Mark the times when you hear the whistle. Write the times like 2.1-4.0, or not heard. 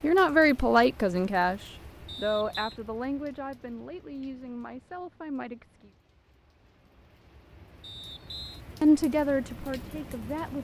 2.0-2.8, 7.8-8.6.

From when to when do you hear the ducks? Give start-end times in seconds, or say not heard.
not heard.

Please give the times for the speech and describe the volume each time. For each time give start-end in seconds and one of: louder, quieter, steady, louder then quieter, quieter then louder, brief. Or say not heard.
0.0-5.9 quieter
8.8-10.6 brief.